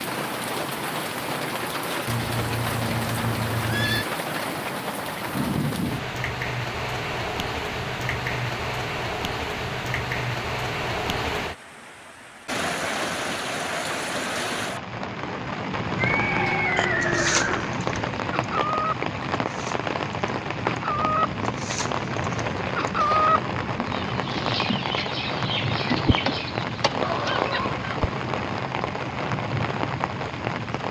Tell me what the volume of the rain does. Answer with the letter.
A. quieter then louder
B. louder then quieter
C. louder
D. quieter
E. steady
E.